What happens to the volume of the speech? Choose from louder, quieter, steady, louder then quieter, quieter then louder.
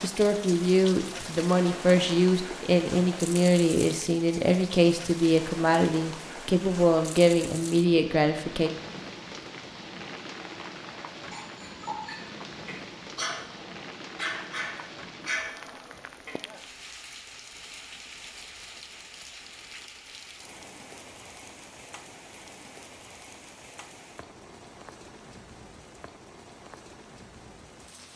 steady.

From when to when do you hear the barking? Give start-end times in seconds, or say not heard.
11.3-16.4.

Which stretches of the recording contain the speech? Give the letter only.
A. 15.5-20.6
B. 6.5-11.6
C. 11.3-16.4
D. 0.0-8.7
D.